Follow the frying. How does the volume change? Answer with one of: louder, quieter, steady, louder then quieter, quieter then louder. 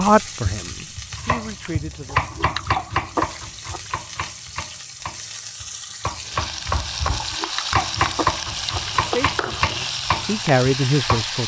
louder.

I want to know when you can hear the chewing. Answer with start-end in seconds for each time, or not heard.
1.6-3.9, 6.7-9.3.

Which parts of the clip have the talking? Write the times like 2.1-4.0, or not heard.
0.0-2.2, 9.0-11.4.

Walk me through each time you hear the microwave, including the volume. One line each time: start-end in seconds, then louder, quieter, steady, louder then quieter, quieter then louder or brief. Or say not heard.
not heard.